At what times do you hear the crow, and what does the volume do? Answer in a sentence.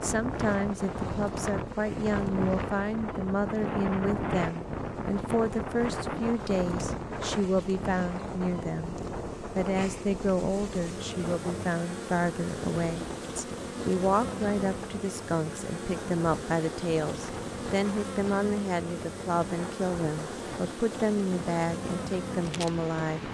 You can't hear the crow here.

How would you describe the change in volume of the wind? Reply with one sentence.
The volume of the wind goes down.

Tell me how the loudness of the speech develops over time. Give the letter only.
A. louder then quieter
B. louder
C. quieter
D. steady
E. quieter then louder
D.